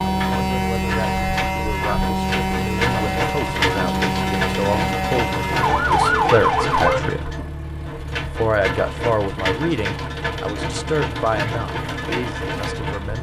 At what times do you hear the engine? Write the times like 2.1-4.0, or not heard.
0.0-13.1.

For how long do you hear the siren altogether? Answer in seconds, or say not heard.
7 s.